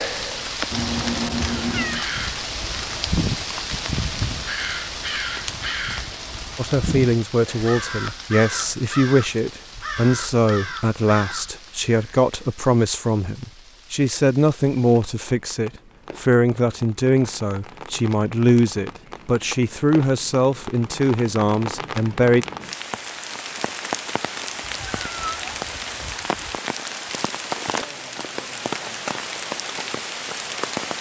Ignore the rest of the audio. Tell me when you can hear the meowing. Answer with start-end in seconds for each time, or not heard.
0.7-2.0, 24.6-26.6.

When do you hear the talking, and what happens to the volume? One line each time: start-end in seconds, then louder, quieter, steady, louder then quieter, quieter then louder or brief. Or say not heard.
6.5-22.4 steady.